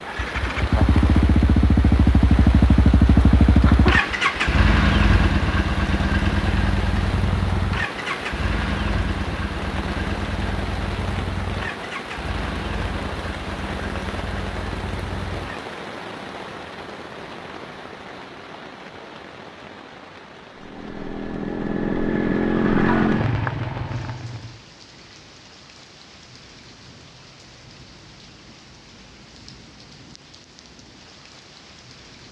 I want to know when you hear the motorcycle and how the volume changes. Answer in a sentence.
You can hear the motorcycle from 0.0 to 15.7 s, getting quieter; and from 20.6 to 24.6 s, getting louder then quieter.